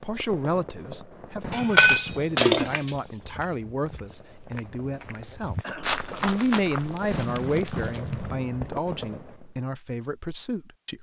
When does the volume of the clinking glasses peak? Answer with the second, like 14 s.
2 s.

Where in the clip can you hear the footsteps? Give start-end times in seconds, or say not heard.
3.2-8.3.